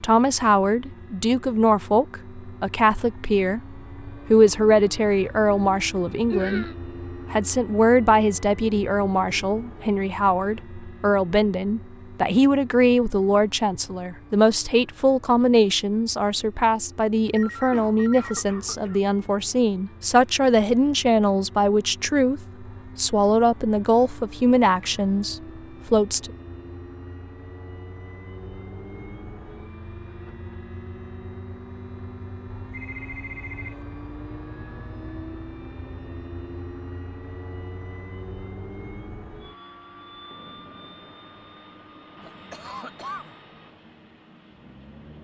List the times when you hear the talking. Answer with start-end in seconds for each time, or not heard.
0.0-6.7, 7.3-26.3.